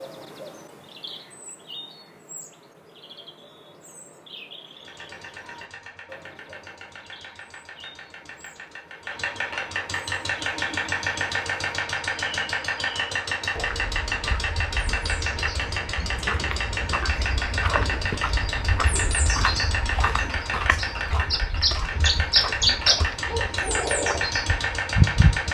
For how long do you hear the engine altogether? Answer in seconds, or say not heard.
21 s.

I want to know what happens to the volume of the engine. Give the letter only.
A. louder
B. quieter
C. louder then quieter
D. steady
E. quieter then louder
A.